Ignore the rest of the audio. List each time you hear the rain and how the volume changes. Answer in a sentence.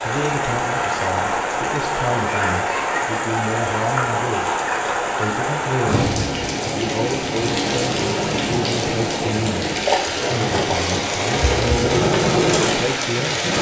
You can hear the rain from 0.0 to 13.5 s, at a steady volume.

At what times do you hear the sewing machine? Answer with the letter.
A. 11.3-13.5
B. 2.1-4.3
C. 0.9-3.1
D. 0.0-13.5
A.